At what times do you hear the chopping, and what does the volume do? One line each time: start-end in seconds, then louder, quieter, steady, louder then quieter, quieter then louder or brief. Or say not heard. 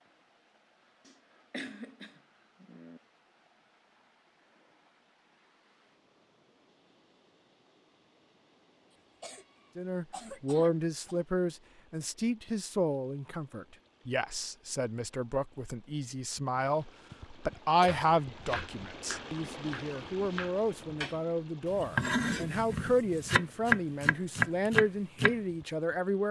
17.9-25.4 louder.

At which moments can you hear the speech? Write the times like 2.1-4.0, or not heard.
9.8-26.2.